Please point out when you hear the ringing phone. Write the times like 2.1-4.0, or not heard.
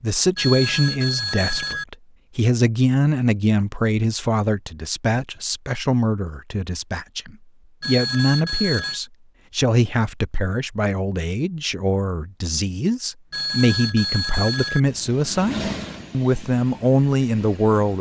0.3-1.9, 7.8-9.0, 13.3-14.8.